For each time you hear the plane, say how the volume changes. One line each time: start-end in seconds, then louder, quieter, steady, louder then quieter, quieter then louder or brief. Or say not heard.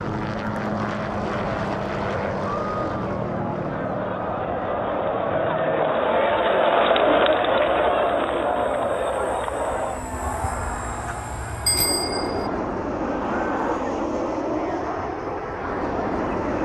0.0-16.6 quieter then louder.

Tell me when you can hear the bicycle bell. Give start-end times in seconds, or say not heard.
11.7-12.5.